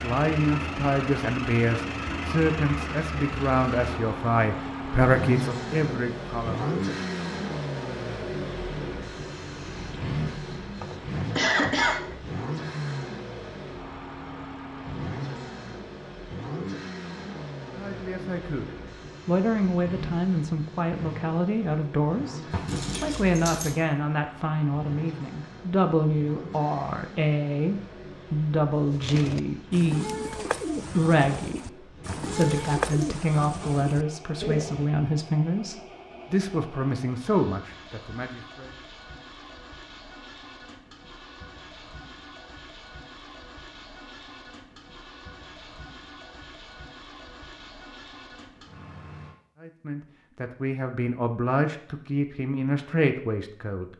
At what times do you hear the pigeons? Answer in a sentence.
You can hear the pigeons from 28.9 to 34.9 s.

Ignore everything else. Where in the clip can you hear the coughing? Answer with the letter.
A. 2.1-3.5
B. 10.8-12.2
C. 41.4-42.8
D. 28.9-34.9
B.